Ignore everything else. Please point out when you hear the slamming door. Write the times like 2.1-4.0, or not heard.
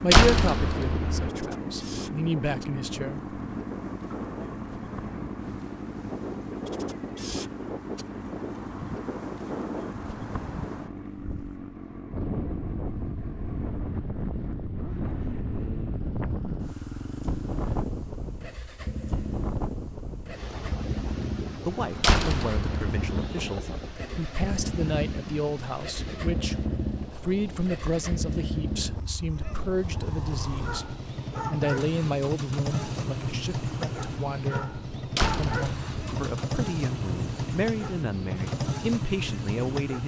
0.1-1.3, 22.0-23.2, 35.1-36.1.